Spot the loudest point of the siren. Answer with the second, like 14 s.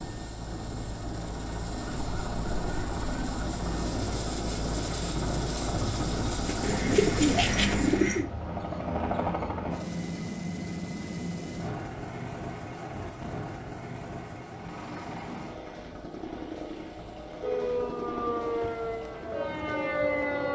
20 s.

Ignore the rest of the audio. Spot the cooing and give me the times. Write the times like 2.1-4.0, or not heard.
6.5-8.2.